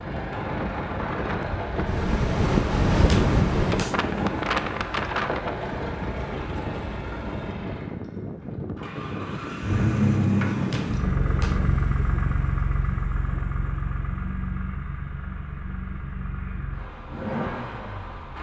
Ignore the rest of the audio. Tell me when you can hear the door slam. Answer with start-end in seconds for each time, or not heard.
3.1-4.0, 10.7-11.6.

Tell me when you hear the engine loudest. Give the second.
10 s.